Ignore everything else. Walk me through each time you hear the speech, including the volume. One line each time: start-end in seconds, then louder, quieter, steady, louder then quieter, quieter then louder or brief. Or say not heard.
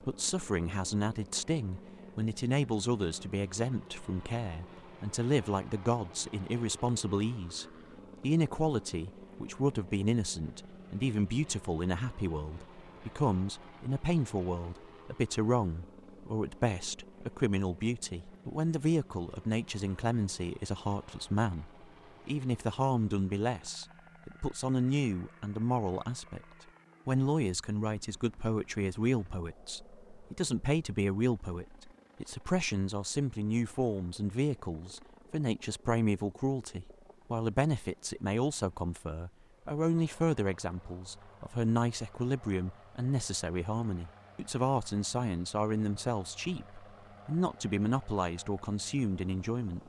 0.1-26.4 steady
27.1-49.8 steady.